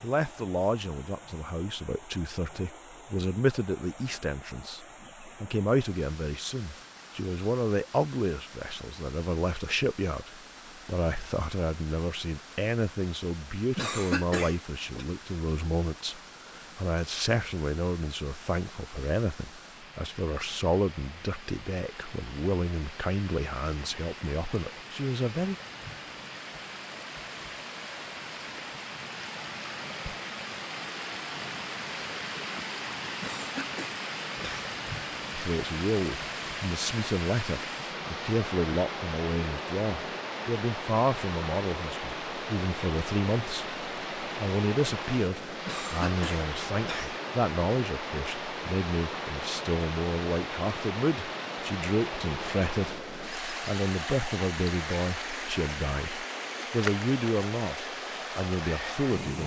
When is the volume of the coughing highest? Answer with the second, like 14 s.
14 s.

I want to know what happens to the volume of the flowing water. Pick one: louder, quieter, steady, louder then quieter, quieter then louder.
louder.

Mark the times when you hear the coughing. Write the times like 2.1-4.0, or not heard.
13.8-15.1, 33.2-34.6, 45.6-47.2.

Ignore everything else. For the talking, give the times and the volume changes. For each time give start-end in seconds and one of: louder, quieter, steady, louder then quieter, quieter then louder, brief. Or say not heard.
0.0-25.6 steady
35.3-59.4 steady.